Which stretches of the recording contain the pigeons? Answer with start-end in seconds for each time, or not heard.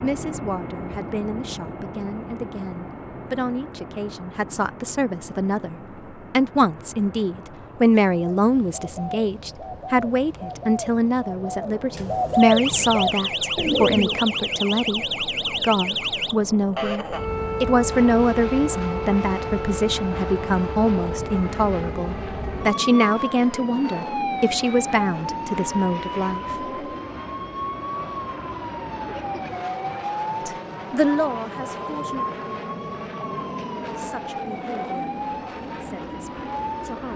8.3-14.4.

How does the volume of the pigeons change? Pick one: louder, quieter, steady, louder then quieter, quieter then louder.
louder.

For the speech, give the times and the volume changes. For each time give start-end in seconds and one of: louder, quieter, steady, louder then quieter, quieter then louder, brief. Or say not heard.
0.0-26.6 louder
30.4-32.2 brief
34.0-35.1 brief
35.8-37.1 brief.